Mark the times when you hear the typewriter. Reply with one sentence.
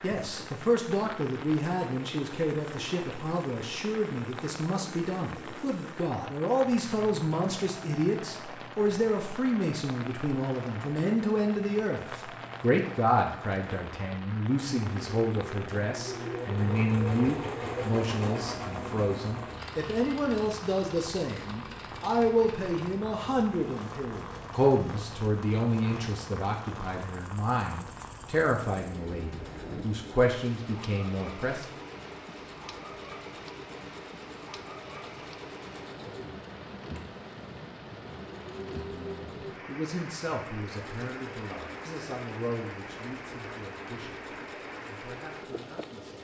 You can't hear the typewriter here.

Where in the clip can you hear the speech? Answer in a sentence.
You can hear the speech from 0.0 to 31.6 s and from 38.7 to 46.1 s.